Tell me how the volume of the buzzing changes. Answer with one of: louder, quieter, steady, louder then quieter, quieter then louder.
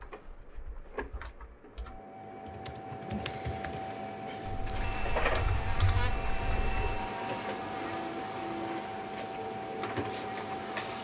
quieter.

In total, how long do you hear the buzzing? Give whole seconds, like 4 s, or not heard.
6 s.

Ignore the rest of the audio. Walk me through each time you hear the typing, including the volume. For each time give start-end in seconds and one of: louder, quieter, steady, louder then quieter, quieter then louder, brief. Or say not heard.
0.0-7.0 louder.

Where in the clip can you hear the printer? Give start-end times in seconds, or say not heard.
0.0-11.0.